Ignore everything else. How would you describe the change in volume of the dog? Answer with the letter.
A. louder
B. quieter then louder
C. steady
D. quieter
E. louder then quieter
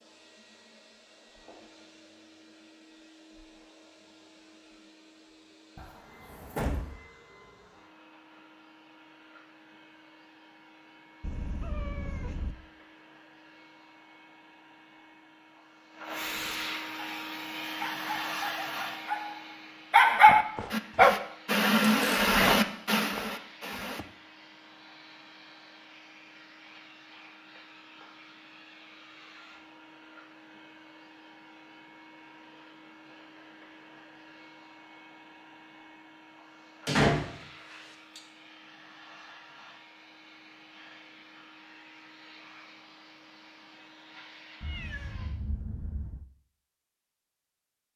E.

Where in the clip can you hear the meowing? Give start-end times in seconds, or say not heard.
11.2-12.6, 44.6-46.2.